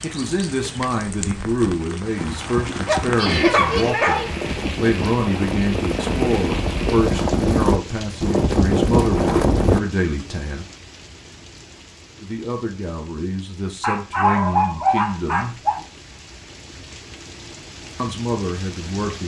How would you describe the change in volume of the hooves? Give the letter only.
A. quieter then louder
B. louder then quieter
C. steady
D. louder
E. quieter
D.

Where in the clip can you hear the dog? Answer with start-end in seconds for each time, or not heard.
2.9-4.4, 13.8-15.8.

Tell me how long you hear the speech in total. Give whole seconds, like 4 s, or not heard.
15 s.